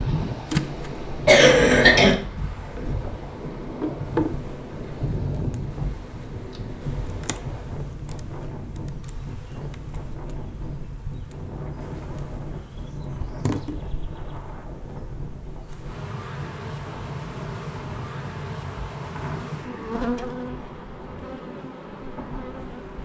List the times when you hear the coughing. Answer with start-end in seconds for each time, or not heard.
1.2-2.1.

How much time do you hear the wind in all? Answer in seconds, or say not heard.
23 s.